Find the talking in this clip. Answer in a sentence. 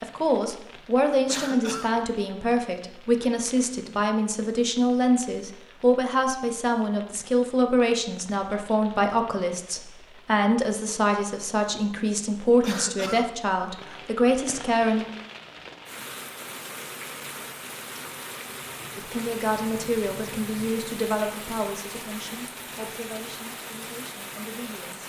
The talking can be heard from 0.0 to 15.1 s and from 18.9 to 25.0 s.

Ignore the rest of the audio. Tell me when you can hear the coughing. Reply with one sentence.
You can hear the coughing from 1.2 to 1.9 s and from 12.6 to 13.2 s.